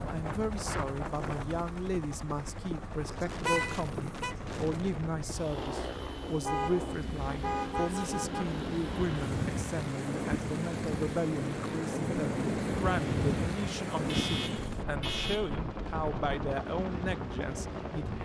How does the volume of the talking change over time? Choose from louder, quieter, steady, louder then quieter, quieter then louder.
steady.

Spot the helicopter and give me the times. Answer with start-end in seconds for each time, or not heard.
0.0-18.1.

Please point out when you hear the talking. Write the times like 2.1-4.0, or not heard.
0.1-18.1.